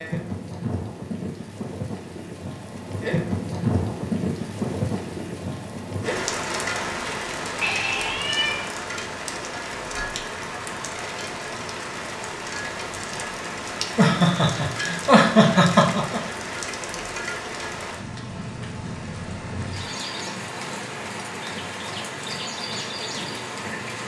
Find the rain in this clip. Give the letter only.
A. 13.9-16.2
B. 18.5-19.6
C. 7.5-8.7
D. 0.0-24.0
D.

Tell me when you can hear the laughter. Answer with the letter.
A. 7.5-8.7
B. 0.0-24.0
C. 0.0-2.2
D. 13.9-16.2
D.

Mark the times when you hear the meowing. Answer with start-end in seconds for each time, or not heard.
7.5-8.7.